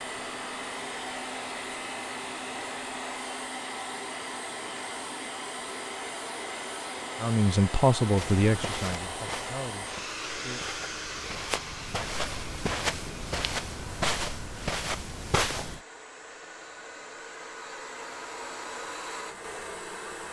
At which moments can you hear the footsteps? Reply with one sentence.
You can hear the footsteps from 8.2 to 15.8 s.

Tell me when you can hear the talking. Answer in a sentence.
The talking can be heard from 7.2 to 10.8 s.